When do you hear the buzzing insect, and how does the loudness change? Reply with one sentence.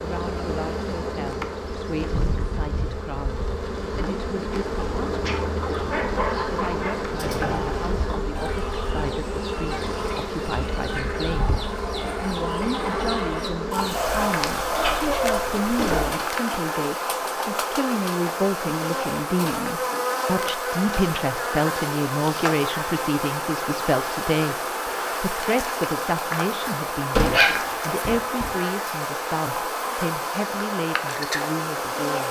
You can hear the buzzing insect from 0.0 to 32.2 s, at a steady volume.